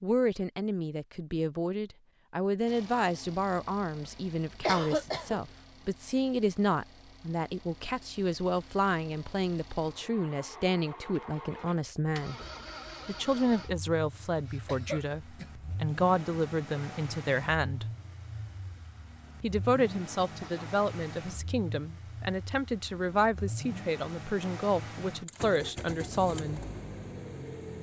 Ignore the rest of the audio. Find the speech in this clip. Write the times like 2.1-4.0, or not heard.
0.0-12.3, 13.1-17.9, 19.4-26.6.